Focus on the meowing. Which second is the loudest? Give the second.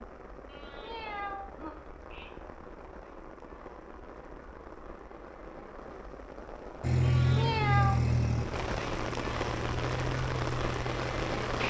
8 s.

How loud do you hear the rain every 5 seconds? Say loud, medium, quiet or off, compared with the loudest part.
quiet, medium, loud.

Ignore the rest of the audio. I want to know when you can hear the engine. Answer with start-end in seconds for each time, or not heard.
6.8-11.6.